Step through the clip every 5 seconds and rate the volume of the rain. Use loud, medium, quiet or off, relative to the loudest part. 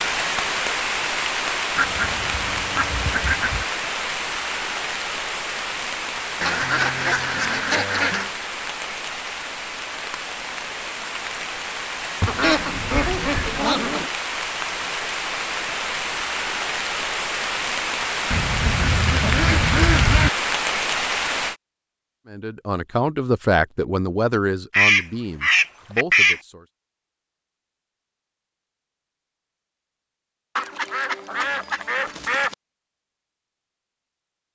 loud, medium, medium, loud, loud, off, off.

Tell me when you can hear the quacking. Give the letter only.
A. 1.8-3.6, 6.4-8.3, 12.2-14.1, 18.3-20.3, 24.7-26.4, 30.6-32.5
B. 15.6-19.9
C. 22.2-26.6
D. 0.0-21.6
A.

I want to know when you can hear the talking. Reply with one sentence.
You can hear the talking from 22.2 to 26.6 s.